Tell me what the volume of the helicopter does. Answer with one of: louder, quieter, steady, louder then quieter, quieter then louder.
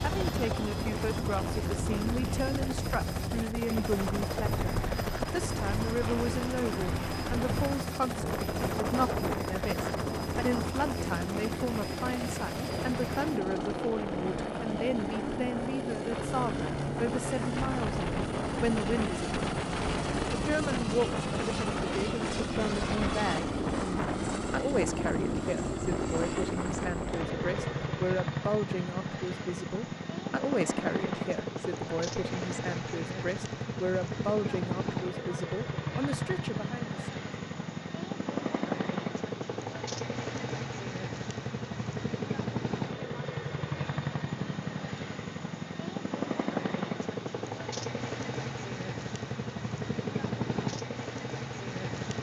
steady.